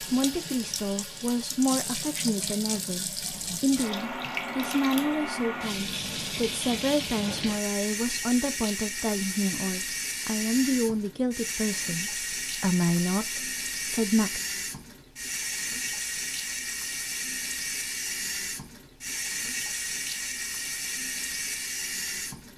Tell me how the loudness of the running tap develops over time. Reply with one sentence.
The loudness of the running tap stays about the same.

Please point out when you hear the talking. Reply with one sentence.
You can hear the talking from 0.0 to 14.4 s.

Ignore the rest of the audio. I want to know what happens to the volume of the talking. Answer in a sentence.
The loudness of the talking stays about the same.